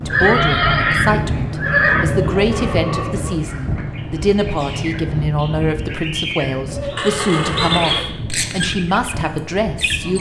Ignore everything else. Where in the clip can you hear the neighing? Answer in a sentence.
The neighing can be heard from 0.1 to 2.0 s and from 7.0 to 8.1 s.